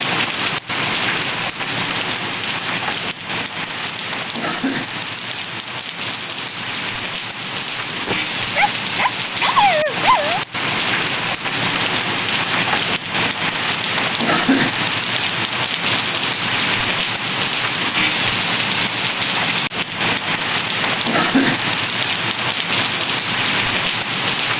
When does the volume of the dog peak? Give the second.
10 s.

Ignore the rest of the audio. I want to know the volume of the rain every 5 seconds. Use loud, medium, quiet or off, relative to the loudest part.
loud, medium, loud, loud, loud.